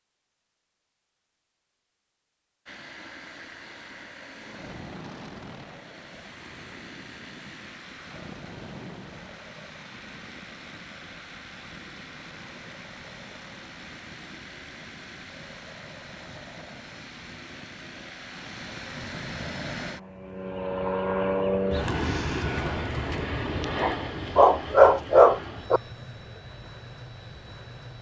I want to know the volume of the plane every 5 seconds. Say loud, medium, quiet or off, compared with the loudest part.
quiet, quiet, quiet, medium, loud, quiet.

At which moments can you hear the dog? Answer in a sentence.
You can hear the dog from 23.8 to 25.8 s.